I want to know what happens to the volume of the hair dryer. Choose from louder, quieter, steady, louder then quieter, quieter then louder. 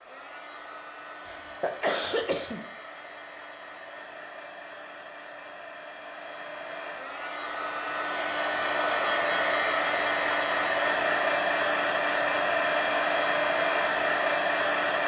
louder.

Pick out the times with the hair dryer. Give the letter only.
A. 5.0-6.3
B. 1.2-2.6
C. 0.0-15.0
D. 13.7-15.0
C.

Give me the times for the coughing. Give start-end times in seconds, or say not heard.
1.2-2.6.